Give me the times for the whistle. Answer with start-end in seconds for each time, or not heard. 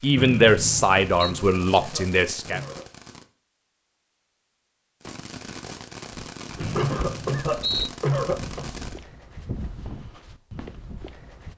0.1-1.3, 6.6-7.9.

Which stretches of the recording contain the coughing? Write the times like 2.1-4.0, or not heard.
1.2-2.9, 6.8-8.7.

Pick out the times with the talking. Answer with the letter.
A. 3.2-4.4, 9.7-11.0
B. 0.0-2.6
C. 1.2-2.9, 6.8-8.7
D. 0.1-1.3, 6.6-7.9
B.